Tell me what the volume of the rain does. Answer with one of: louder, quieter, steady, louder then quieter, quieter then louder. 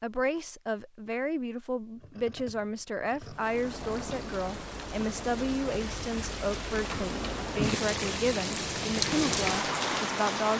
louder.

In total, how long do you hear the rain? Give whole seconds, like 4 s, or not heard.
7 s.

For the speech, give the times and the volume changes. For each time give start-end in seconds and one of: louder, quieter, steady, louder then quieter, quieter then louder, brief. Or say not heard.
0.0-10.5 steady.